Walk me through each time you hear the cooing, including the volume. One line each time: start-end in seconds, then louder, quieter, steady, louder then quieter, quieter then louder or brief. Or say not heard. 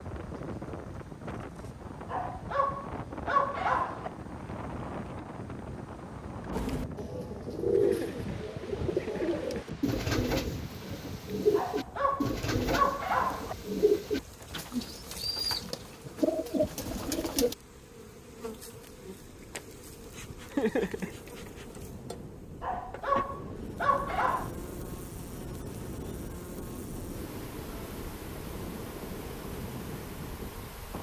6.5-17.6 steady.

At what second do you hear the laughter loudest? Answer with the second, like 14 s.
21 s.